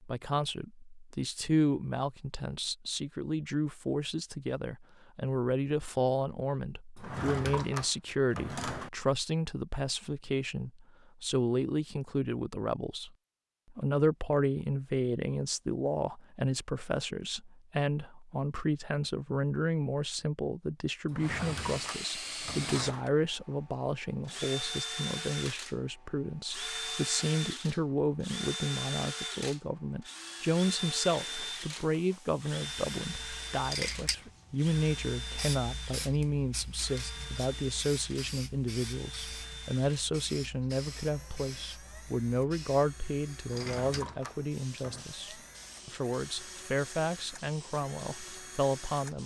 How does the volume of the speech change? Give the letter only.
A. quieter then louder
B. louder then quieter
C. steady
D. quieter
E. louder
C.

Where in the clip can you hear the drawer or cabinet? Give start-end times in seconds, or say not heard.
7.0-8.9, 21.1-23.1, 43.5-45.0.